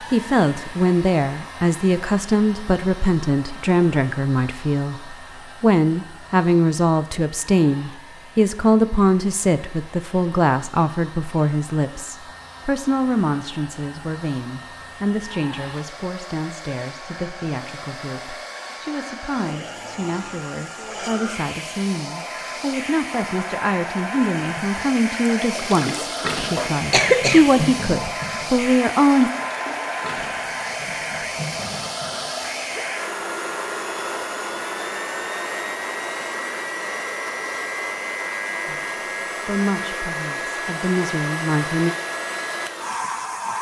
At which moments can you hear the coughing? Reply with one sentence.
The coughing can be heard from 26.6 to 27.6 s.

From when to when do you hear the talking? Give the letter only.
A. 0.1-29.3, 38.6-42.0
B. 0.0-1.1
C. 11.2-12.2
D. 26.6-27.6
A.